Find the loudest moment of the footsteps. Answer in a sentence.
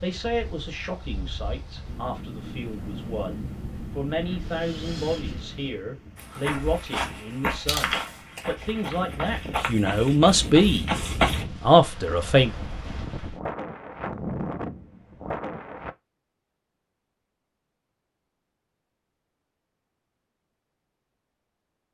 The loudest moment of the footsteps is at 11 seconds.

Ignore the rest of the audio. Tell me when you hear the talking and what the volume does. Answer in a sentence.
You can hear the talking from 0.0 to 10.9 s, getting louder; and briefly from 11.6 to 12.5 s.